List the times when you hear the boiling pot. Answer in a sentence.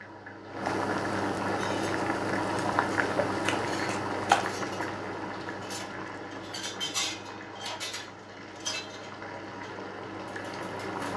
You can hear the boiling pot from 0.0 to 11.1 s.